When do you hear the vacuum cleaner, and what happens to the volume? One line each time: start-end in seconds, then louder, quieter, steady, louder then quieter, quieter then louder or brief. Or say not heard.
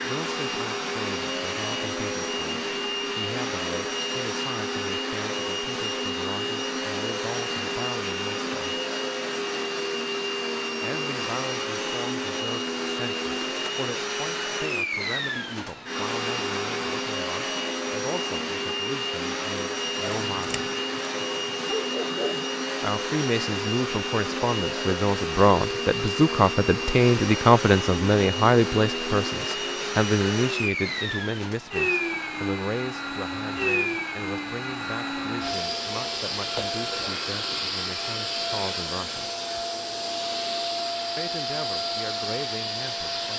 0.0-43.3 steady.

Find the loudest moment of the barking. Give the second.
22 s.